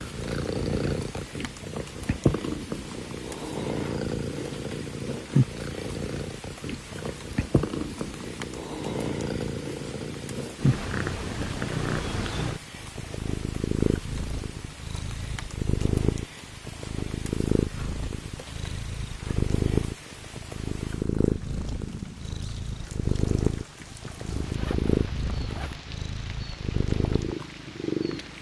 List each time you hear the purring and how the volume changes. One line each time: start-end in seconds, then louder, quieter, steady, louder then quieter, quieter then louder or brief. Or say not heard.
0.0-28.3 steady.